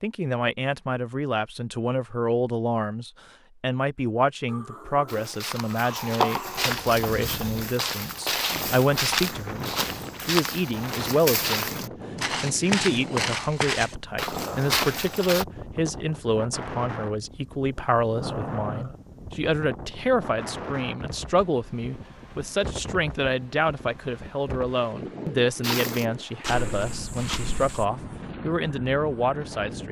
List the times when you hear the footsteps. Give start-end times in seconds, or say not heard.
5.0-15.4, 25.6-27.9.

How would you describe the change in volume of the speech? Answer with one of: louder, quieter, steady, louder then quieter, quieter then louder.
steady.